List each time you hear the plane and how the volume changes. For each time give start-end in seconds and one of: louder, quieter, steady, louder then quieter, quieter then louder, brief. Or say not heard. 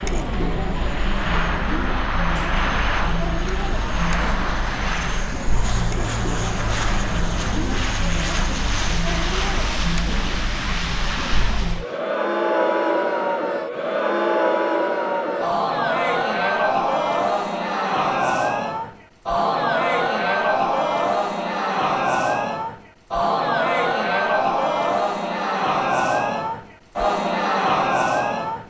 0.0-12.0 steady.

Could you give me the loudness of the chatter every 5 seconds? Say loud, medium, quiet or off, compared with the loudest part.
medium, medium, loud, loud, loud, loud.